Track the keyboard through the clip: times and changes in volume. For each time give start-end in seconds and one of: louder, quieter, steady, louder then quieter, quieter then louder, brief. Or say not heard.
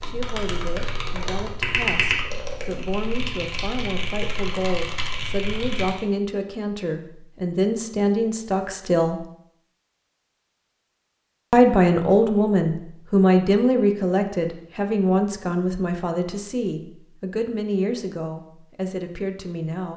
0.0-6.0 louder then quieter.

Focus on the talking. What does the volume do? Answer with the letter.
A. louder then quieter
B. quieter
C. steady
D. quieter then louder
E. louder
A.